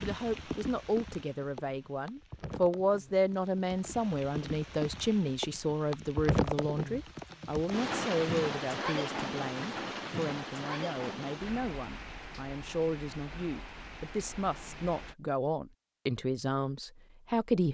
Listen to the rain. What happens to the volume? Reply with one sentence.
The volume of the rain goes up, then down.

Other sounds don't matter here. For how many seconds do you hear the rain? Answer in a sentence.
You can hear the rain for 15 seconds altogether.